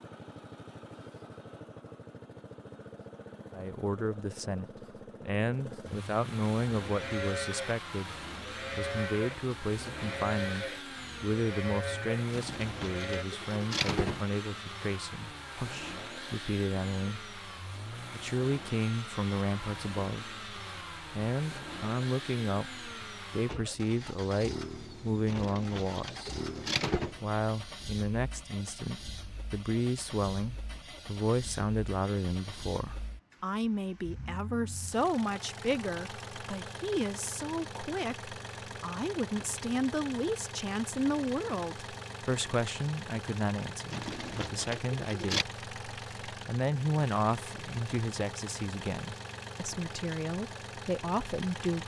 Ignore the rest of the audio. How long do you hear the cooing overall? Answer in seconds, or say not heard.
5 s.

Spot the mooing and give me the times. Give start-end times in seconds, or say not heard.
6.8-13.2.